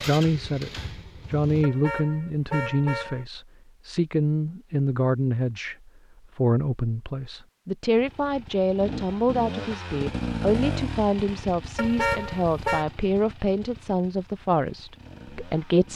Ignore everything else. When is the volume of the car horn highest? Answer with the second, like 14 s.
12 s.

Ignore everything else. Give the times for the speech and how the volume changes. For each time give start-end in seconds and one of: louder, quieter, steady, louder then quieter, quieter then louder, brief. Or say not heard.
0.1-15.9 steady.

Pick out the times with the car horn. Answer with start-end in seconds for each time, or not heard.
1.6-3.2, 11.8-12.8.